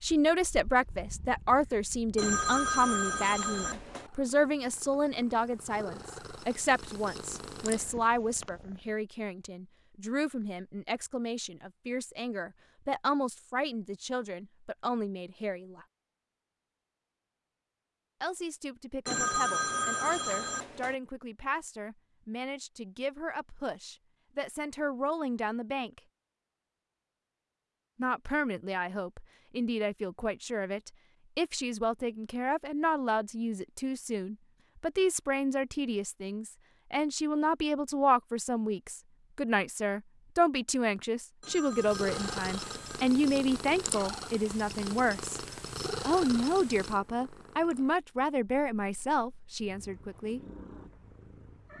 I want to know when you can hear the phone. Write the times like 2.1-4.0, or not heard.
2.1-4.1, 19.1-20.9, 41.4-43.1.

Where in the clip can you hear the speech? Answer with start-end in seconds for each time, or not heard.
0.0-15.8, 18.2-26.0, 27.9-45.4, 46.0-50.4.